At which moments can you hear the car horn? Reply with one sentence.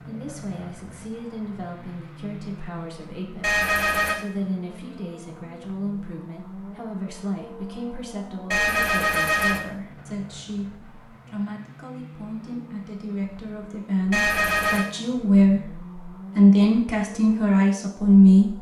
You can hear the car horn from 3.4 to 4.2 s, from 8.5 to 9.7 s and from 14.1 to 14.8 s.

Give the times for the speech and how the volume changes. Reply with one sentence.
The speech can be heard from 0.1 to 18.5 s, getting louder.